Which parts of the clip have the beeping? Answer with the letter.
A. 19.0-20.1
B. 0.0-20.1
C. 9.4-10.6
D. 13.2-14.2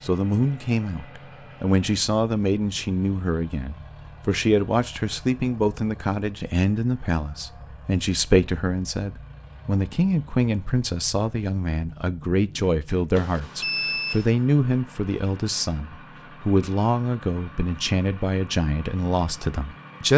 D.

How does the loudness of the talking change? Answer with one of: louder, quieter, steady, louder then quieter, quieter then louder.
steady.